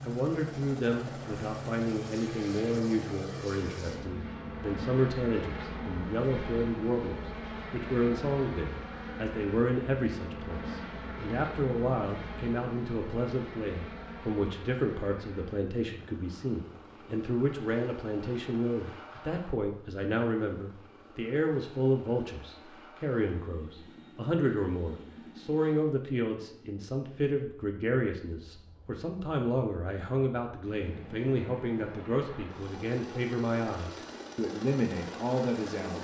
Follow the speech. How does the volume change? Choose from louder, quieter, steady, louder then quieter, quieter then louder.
steady.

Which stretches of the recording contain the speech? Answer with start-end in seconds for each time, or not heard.
0.1-35.9.